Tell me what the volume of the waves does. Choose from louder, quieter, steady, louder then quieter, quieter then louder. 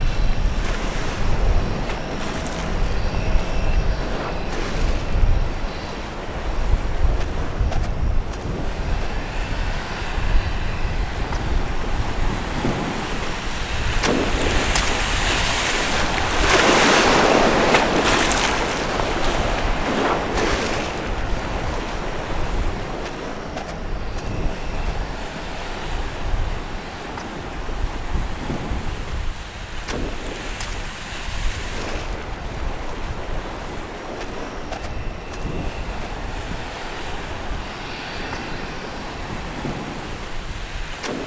louder then quieter.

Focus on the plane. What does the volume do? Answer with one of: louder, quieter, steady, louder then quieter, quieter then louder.
quieter.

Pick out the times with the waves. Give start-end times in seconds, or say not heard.
0.0-41.2.